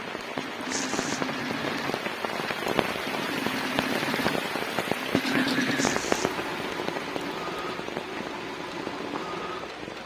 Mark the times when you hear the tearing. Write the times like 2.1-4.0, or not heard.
0.7-1.2, 5.8-6.3.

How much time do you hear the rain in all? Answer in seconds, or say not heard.
10 s.